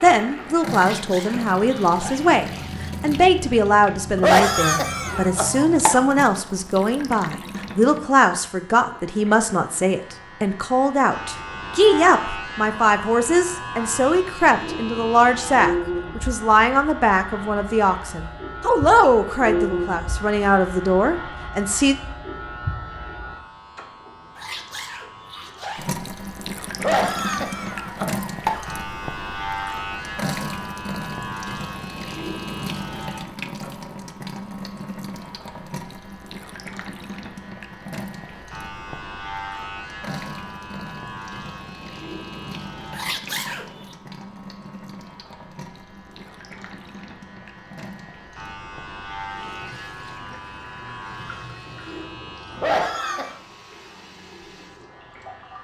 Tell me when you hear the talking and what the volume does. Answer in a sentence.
The talking can be heard from 0.0 to 21.9 s, at a steady volume.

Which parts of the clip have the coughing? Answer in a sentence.
You can hear the coughing from 4.2 to 6.0 s, from 26.8 to 28.6 s and from 52.5 to 53.4 s.